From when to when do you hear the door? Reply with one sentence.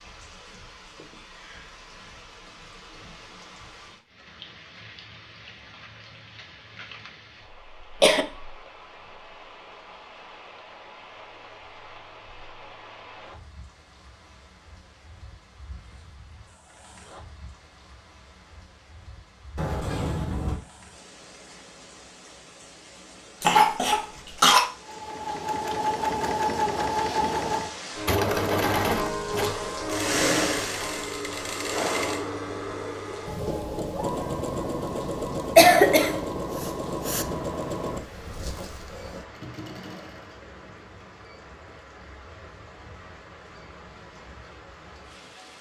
The door can be heard from 19.6 to 20.6 s.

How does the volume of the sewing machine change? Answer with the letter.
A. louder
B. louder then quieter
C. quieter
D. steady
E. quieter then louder
C.